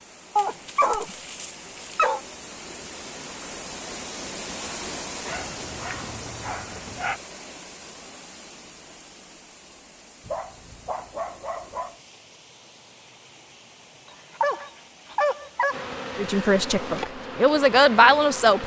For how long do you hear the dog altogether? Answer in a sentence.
You can hear the dog for 7 seconds altogether.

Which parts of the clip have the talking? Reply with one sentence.
You can hear the talking from 16.1 to 18.6 s.